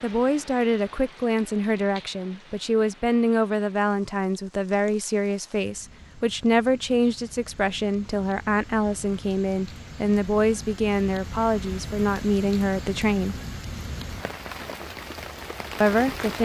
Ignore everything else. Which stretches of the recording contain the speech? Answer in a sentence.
The speech can be heard from 0.0 to 13.3 s and from 15.8 to 16.4 s.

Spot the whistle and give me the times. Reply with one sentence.
You can't hear the whistle here.